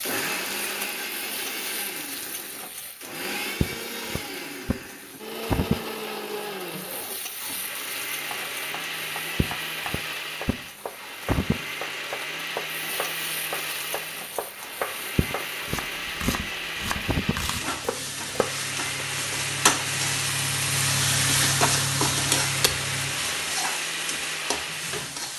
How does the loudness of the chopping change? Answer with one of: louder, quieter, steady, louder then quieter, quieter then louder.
louder.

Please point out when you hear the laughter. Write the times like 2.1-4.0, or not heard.
not heard.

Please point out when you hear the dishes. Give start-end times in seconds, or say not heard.
not heard.